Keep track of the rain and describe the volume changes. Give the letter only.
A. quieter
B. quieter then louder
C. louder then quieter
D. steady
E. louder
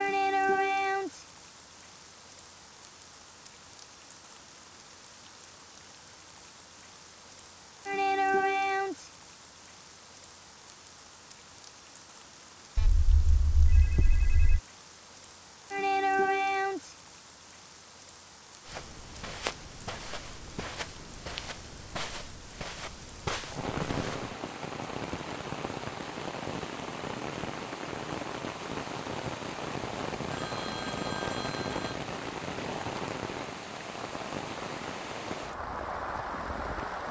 D.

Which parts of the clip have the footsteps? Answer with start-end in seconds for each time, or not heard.
18.6-24.4.